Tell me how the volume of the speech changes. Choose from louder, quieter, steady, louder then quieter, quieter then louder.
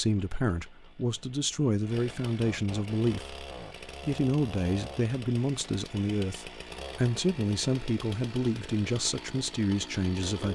steady.